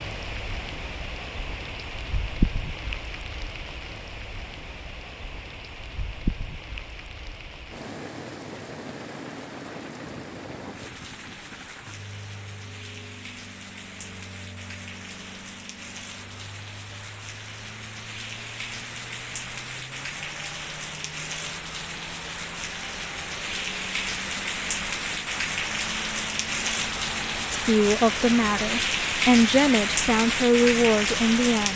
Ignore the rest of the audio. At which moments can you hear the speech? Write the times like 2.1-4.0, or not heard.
27.5-31.7.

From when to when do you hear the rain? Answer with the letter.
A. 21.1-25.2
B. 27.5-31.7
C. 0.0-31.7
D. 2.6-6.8
C.